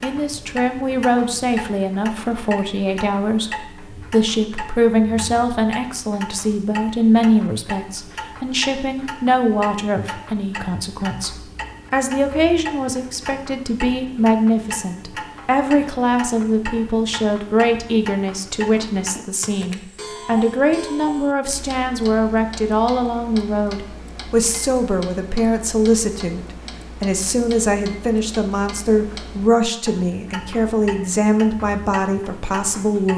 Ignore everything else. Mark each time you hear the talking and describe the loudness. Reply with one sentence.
You can hear the talking from 0.0 to 33.1 s, at a steady volume.